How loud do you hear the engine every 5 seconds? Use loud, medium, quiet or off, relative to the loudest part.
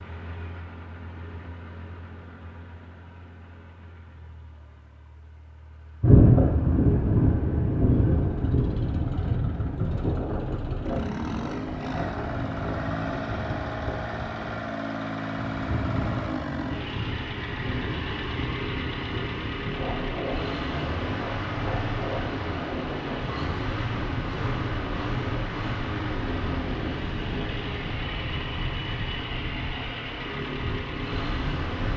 quiet, quiet, loud, loud, loud, loud, loud.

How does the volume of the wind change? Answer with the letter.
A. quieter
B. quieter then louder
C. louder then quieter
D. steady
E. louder
A.